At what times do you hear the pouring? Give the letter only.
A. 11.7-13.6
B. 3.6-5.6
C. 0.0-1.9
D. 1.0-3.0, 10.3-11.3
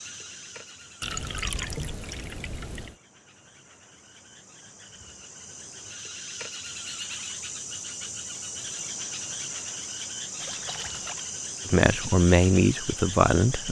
D.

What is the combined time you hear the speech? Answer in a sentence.
The speech can be heard for 2 seconds in total.